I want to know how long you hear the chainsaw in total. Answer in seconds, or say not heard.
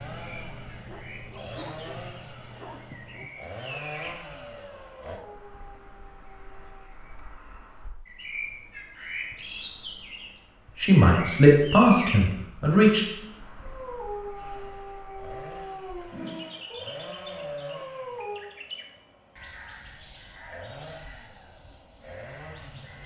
14 s.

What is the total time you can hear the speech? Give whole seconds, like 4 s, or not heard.
2 s.